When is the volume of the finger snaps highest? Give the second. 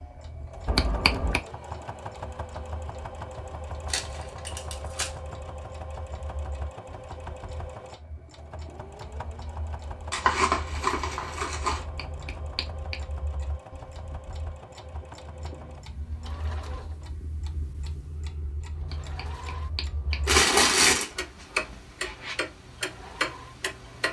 1 s.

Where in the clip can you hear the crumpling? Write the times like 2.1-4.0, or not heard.
3.9-5.1, 10.1-11.8, 20.2-21.1.